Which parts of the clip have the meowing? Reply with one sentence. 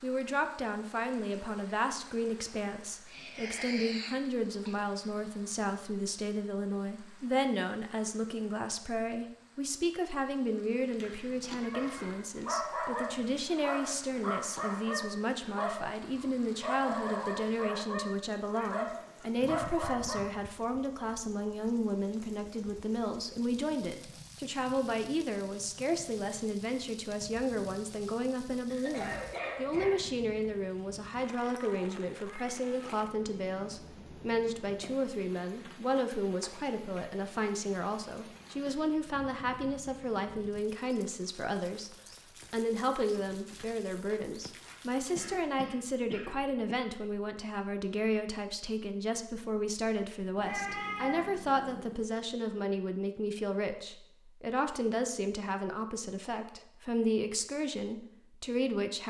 The meowing can be heard from 10.9 to 12.2 s, from 31.4 to 32.8 s and from 50.4 to 52.0 s.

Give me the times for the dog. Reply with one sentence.
The dog can be heard from 11.4 to 20.3 s.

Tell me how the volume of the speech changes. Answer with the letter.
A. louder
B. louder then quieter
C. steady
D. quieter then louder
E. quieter
C.